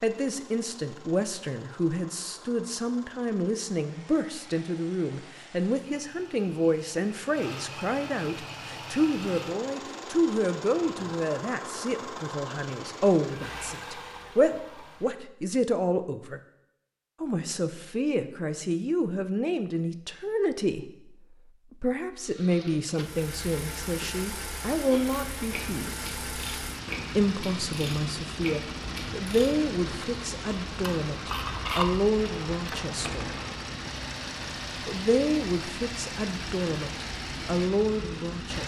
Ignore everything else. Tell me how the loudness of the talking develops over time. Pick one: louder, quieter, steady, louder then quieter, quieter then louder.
steady.